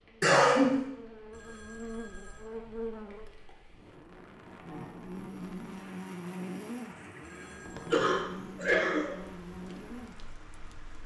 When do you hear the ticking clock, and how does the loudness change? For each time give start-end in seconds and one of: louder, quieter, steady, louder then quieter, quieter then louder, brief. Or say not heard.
not heard.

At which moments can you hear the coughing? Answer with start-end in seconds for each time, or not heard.
0.2-0.8, 7.9-9.2.